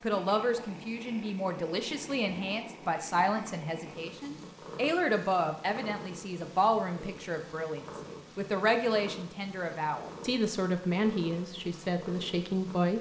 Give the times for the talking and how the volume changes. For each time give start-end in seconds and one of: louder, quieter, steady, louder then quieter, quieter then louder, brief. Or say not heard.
0.0-12.9 steady.